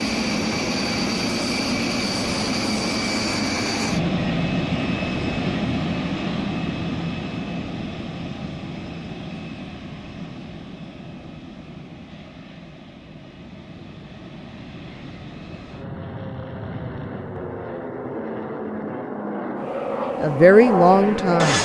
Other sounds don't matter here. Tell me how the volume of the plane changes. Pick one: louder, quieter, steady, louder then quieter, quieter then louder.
quieter then louder.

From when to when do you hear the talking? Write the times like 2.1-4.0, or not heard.
20.1-21.6.